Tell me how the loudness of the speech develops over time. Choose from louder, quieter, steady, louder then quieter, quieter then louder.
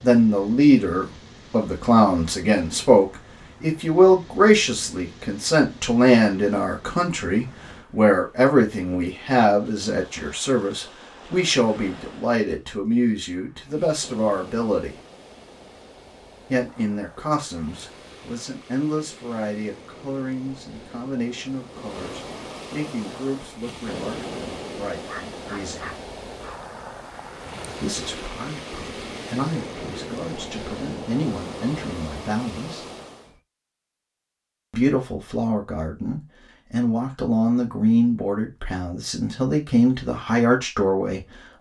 quieter then louder.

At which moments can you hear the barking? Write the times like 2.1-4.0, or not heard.
25.0-26.6.